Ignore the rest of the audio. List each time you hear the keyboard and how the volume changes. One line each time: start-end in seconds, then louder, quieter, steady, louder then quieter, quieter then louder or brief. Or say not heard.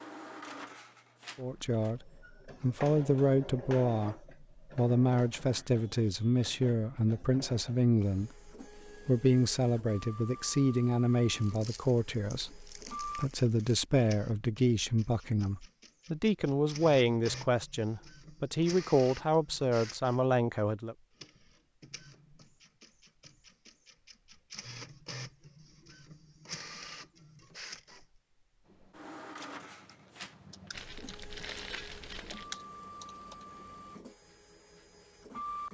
28.6-34.0 louder then quieter.